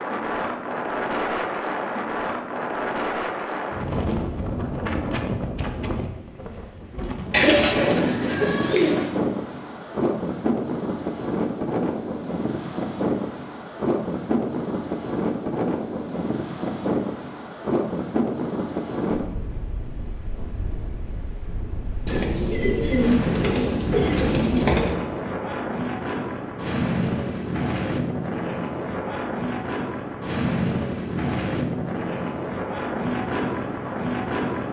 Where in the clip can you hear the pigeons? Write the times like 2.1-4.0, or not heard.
7.3-9.1, 22.1-25.1.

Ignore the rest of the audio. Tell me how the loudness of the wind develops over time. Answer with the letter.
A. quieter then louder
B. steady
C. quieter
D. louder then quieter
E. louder
B.